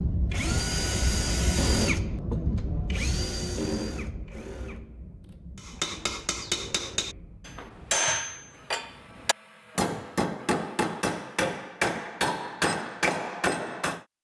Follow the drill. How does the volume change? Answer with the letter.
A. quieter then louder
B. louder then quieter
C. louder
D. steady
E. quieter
E.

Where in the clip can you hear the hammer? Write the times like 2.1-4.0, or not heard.
5.5-14.0.